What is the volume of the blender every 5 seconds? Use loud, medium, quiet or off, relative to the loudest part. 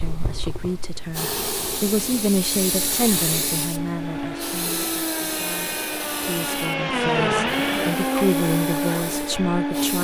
medium, loud.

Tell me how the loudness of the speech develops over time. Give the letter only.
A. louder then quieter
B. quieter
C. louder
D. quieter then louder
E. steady
D.